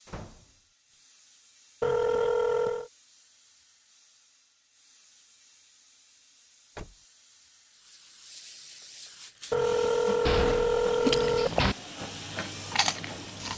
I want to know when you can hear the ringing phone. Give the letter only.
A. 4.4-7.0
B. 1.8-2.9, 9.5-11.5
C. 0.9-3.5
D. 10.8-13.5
B.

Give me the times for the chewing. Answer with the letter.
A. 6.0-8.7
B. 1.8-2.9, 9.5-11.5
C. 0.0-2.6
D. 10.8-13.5
D.